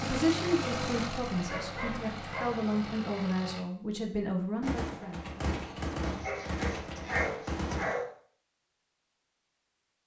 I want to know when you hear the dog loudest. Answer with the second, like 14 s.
7 s.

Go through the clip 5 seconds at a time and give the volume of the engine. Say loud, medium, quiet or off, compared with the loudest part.
loud, off.